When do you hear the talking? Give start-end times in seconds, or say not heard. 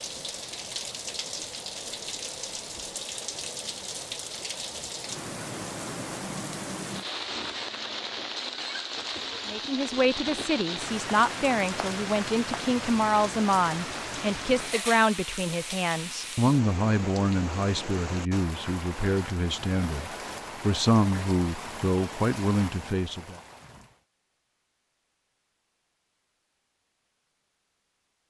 9.4-23.4.